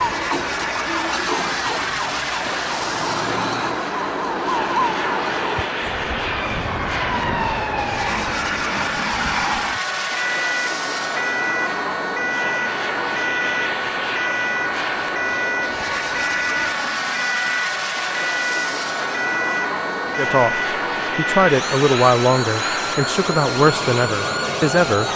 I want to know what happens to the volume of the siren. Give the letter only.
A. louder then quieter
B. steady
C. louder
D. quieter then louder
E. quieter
B.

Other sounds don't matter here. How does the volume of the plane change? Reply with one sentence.
The loudness of the plane stays about the same.